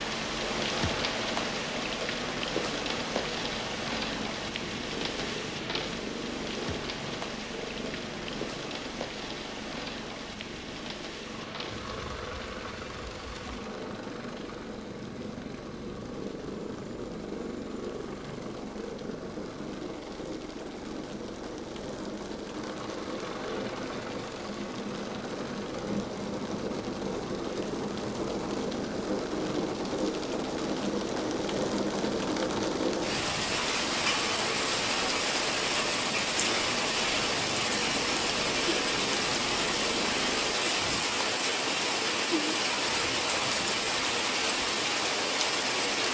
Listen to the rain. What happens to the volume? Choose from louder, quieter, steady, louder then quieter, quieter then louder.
quieter then louder.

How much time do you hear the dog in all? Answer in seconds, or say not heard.
not heard.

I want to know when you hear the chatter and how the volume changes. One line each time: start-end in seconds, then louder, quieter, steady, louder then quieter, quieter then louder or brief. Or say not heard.
not heard.